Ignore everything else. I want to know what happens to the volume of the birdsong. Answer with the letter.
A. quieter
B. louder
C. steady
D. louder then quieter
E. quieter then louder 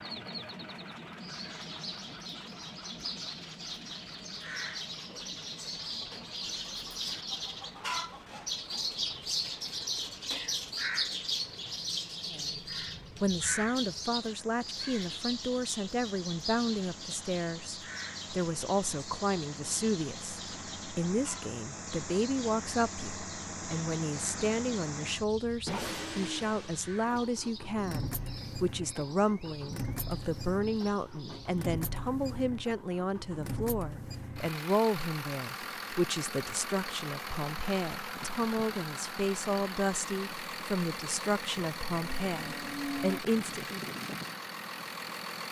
D.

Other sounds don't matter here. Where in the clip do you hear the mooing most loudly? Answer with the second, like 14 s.
43 s.